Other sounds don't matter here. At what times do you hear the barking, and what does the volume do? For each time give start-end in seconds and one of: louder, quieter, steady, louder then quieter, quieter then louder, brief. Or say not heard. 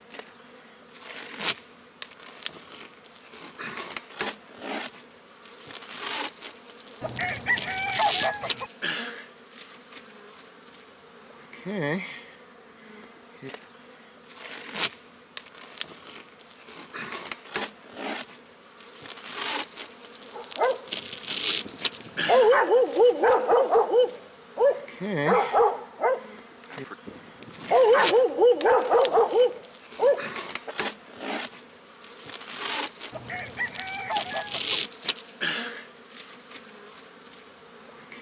20.4-30.8 steady.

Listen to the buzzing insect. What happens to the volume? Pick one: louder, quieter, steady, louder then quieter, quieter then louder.
steady.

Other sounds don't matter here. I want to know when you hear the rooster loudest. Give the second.
8 s.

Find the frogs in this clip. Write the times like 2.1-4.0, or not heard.
not heard.